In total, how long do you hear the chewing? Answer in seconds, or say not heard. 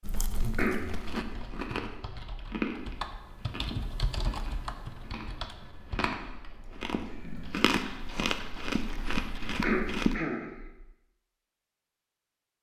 10 s.